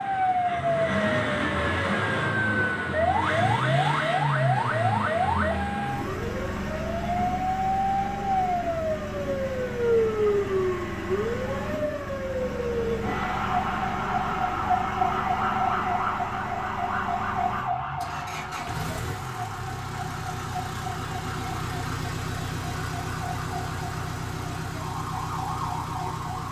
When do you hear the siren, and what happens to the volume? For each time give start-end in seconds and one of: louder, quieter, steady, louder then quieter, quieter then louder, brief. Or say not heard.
0.0-26.4 quieter.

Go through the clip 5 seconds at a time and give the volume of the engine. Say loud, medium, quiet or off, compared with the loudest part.
loud, medium, medium, medium, medium, medium.